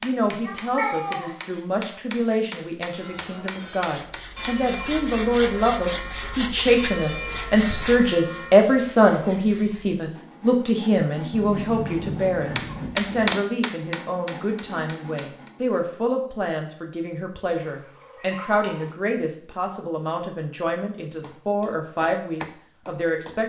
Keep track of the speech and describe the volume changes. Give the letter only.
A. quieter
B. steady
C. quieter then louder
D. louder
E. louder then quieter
E.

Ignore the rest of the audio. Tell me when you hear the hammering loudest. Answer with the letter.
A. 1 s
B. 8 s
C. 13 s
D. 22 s
C.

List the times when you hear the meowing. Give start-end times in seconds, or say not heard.
0.4-1.6, 11.3-13.3, 17.6-18.9.